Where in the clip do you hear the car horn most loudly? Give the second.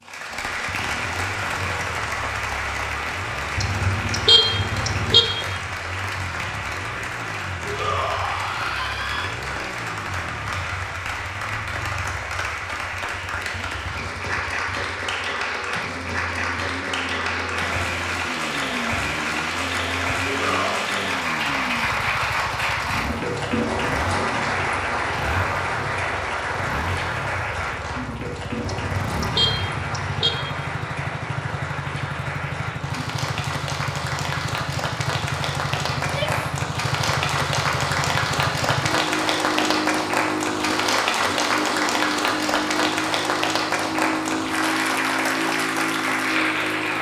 4 s.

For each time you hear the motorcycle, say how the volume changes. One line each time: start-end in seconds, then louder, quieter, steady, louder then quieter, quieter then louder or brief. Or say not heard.
0.0-46.9 louder.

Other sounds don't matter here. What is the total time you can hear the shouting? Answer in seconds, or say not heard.
3 s.